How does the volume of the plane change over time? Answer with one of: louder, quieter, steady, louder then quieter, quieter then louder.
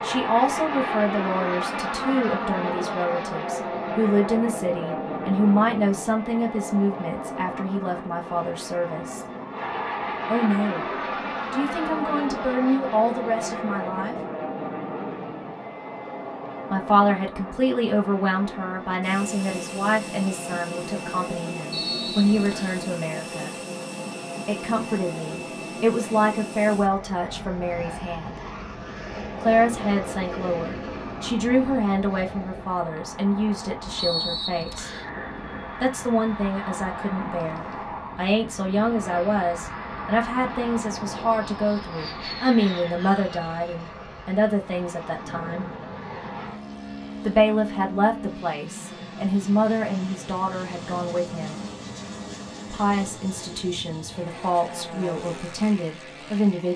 quieter.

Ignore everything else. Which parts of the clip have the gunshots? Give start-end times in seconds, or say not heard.
not heard.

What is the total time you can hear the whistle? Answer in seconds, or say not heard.
2 s.